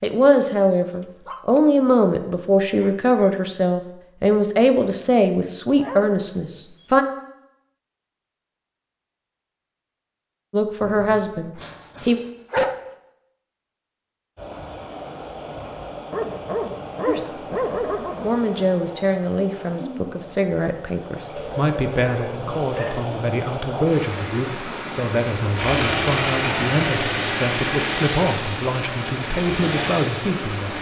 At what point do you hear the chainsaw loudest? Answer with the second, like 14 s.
26 s.